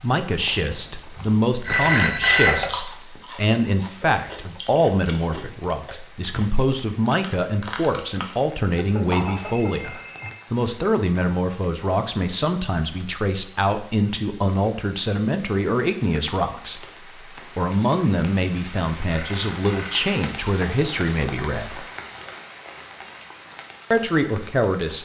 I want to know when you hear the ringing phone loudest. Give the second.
2 s.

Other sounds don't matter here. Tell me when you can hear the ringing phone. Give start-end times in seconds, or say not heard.
1.6-2.7, 8.8-10.3, 19.1-20.1.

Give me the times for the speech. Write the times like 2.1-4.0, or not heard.
0.0-16.9, 17.6-21.9, 23.9-25.0.